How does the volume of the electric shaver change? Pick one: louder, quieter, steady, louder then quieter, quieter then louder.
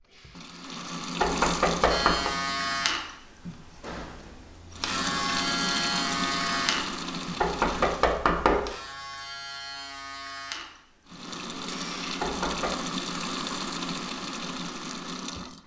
quieter.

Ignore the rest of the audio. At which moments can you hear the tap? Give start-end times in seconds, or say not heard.
0.0-3.0, 4.7-8.2, 11.1-15.6.